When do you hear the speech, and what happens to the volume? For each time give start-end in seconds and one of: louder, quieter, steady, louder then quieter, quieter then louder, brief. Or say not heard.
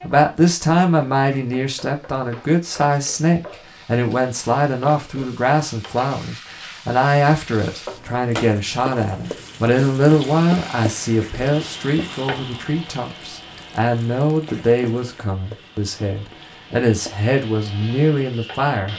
0.0-18.9 steady.